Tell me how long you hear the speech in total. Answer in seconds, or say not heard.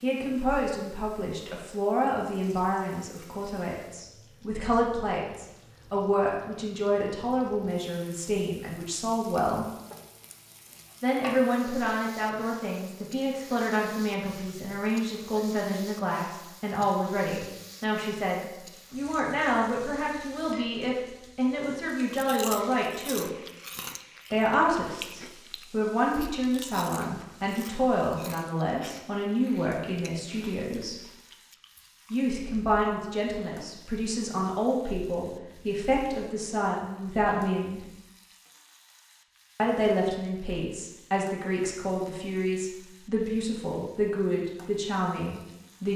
41 s.